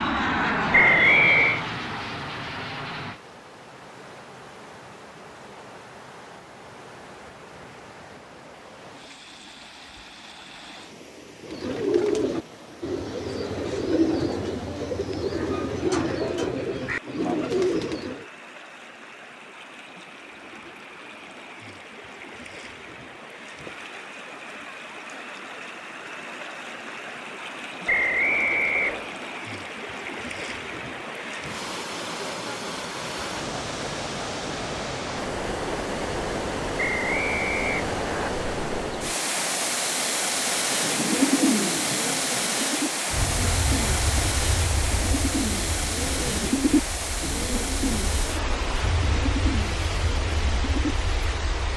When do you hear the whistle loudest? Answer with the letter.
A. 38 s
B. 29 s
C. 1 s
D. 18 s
C.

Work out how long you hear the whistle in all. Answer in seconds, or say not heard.
4 s.